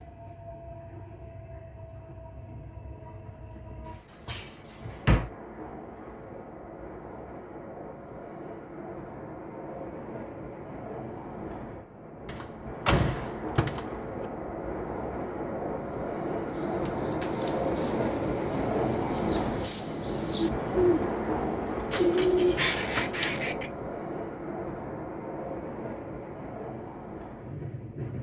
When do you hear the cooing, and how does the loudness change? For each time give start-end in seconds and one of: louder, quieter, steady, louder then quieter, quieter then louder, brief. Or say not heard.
16.4-23.7 louder.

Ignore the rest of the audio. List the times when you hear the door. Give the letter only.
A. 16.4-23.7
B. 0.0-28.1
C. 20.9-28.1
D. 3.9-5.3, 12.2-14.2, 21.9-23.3
D.